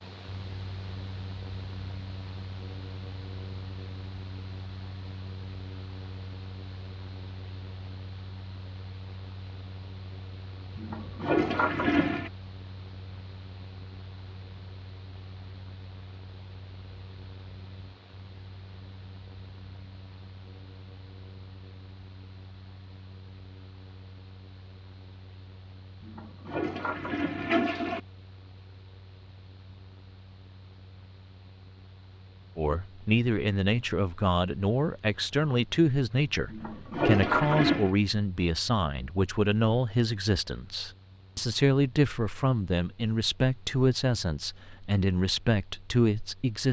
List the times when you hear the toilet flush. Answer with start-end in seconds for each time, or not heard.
10.8-12.3, 26.0-28.0, 36.5-38.0.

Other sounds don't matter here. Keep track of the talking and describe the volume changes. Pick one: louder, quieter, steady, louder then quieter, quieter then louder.
steady.